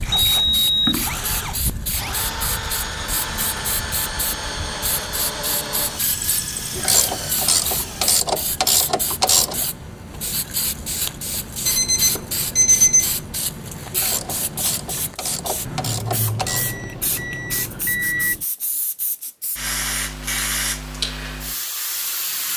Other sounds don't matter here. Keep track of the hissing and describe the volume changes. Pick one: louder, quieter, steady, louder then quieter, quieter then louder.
steady.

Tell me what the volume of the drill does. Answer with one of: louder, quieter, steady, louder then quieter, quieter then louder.
steady.